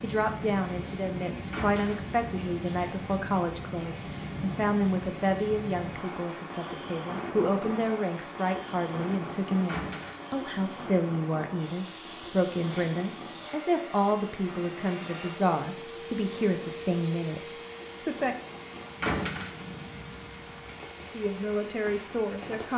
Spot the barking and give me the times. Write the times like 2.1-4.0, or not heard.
not heard.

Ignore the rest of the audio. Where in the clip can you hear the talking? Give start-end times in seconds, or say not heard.
0.0-18.4, 21.1-22.7.